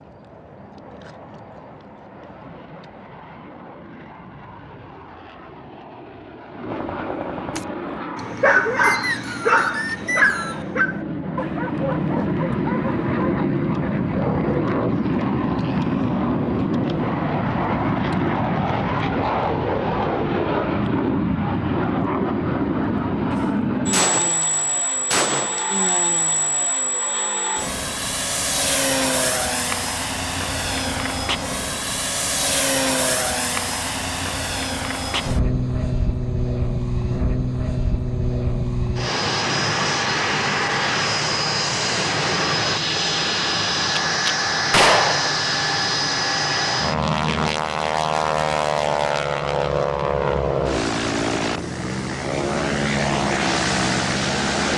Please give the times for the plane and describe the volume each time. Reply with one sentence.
The plane can be heard from 0.0 to 54.7 s, getting louder.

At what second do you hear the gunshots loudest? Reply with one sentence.
The volume of the gunshots peaks at 45 seconds.